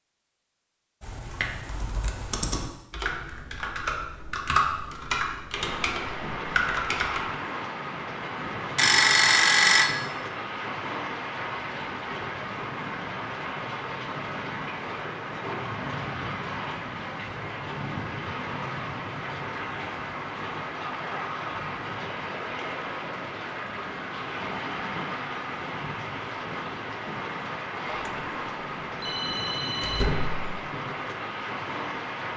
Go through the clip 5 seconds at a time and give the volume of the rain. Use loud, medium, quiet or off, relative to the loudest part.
off, loud, loud, loud, loud, loud, loud.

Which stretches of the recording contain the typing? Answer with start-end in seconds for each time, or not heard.
1.0-7.2.